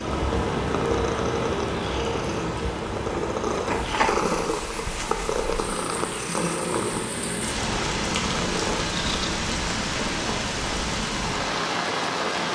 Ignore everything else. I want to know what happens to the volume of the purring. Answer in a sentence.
The volume of the purring goes up, then down.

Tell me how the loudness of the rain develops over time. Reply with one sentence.
The loudness of the rain goes down, then up.